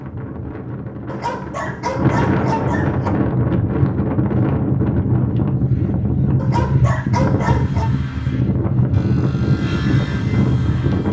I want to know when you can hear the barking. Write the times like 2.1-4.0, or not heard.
1.1-3.1, 6.3-7.9.